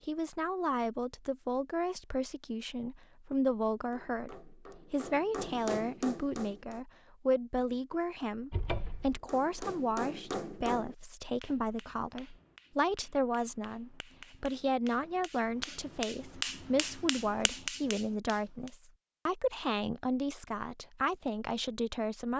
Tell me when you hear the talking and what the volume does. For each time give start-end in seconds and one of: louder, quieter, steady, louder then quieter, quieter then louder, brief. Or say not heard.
0.1-22.3 steady.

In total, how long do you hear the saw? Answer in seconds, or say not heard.
not heard.